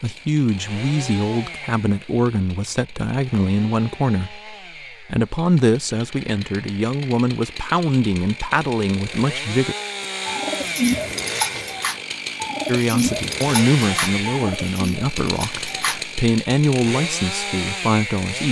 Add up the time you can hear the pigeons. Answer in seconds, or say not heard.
6 s.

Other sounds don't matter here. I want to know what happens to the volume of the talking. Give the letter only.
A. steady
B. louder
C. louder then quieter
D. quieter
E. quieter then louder
A.